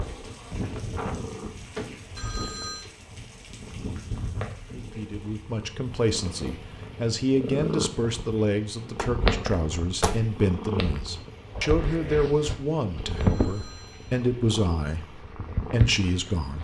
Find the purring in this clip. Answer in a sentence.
You can hear the purring from 0.0 to 16.5 s.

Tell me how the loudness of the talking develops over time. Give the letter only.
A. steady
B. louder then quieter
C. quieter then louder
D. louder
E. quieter
A.